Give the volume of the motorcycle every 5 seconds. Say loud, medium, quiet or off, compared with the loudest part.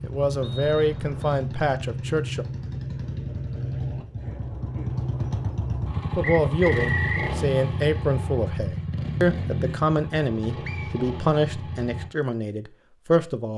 loud, loud, medium.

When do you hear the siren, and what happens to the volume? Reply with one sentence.
The siren can't be heard in this clip.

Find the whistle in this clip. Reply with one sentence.
You can hear the whistle from 0.4 to 1.4 s, from 6.2 to 7.3 s and from 10.7 to 11.1 s.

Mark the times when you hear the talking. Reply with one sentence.
The talking can be heard from 0.0 to 2.5 s and from 6.2 to 13.5 s.